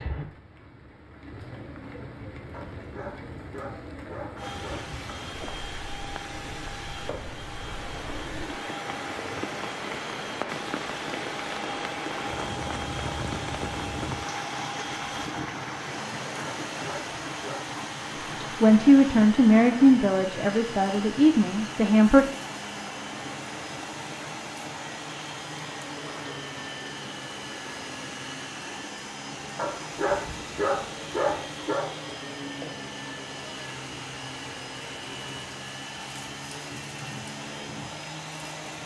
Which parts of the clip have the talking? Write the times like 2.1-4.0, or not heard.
18.6-22.2.